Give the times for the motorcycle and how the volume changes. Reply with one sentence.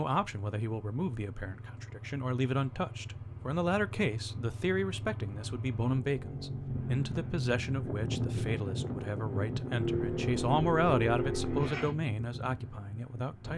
You can hear the motorcycle from 0.1 to 11.9 s, getting louder.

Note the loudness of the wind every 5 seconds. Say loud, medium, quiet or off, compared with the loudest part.
off, loud, loud.